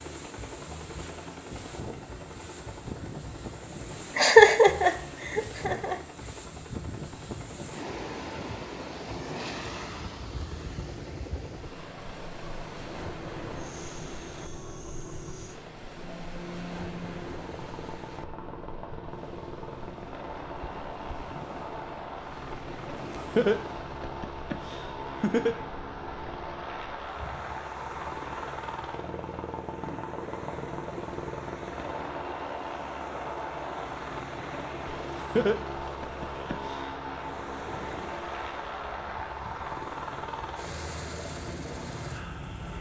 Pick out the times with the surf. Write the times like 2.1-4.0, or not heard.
0.0-42.7.